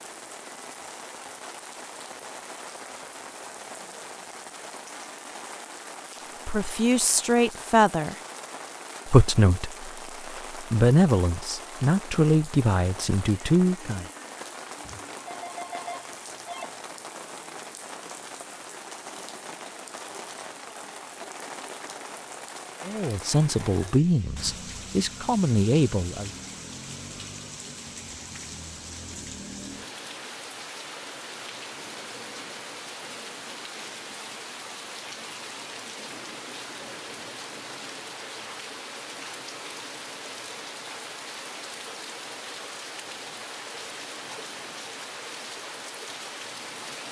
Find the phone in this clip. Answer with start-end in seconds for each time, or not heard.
14.8-16.8.